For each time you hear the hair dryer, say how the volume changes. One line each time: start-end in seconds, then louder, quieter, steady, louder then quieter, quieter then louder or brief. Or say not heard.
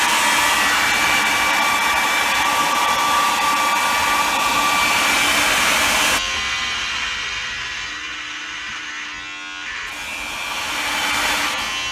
0.0-6.2 steady
9.8-11.8 brief.